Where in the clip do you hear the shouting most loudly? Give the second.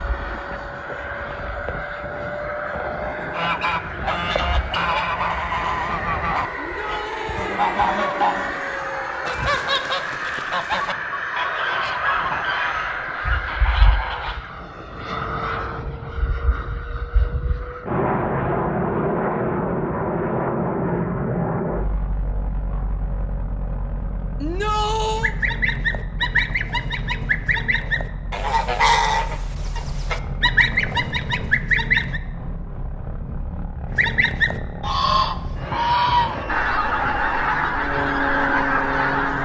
25 s.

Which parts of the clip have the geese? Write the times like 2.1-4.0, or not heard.
3.3-14.4, 25.1-32.2, 33.9-39.4.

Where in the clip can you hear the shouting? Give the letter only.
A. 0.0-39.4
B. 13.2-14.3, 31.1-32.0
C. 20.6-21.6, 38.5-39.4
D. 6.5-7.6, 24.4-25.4
D.